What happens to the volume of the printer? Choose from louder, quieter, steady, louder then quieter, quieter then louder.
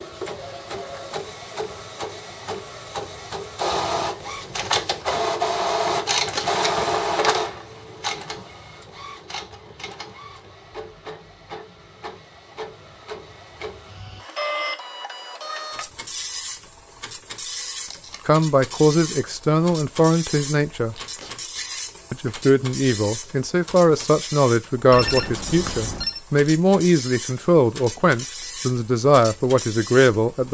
quieter.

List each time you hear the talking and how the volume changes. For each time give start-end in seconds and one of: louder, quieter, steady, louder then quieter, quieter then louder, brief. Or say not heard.
18.2-20.9 brief
22.1-30.4 steady.